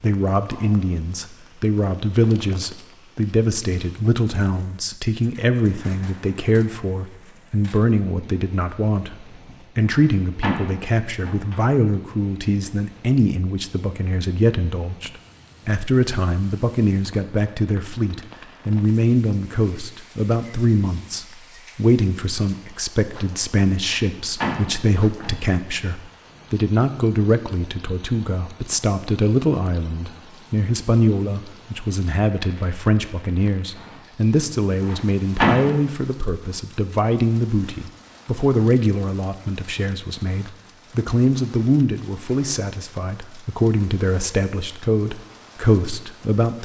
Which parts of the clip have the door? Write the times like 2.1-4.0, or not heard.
9.8-11.6, 23.8-25.4, 34.8-35.8.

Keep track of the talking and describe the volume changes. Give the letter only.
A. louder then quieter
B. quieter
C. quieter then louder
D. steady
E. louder
D.